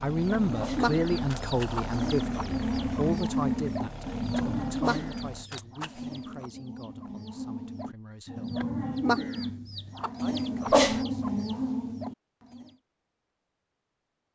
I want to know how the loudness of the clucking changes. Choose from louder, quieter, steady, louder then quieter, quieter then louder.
quieter then louder.